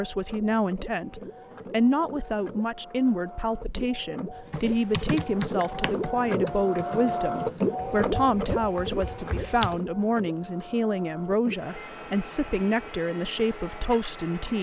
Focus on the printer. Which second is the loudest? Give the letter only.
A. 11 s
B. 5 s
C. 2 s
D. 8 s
D.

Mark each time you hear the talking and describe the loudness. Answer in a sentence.
You can hear the talking from 0.0 to 14.5 s, at a steady volume.